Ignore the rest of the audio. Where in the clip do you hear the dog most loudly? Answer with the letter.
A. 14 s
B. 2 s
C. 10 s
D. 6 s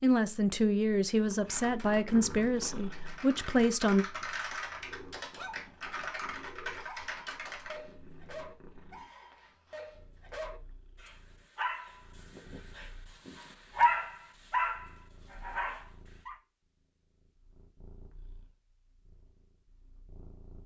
A.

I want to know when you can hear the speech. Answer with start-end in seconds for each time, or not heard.
0.0-4.0.